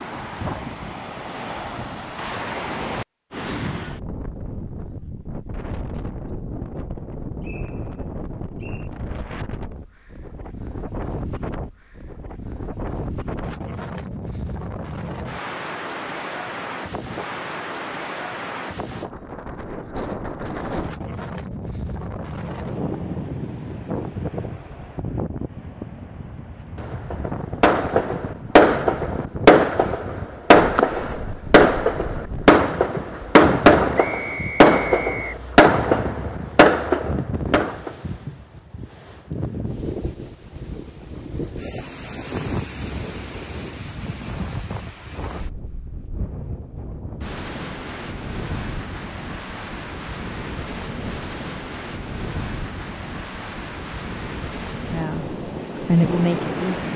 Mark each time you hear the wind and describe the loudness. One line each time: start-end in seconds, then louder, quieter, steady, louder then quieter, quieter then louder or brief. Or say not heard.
0.0-56.9 steady.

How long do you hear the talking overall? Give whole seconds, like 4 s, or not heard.
2 s.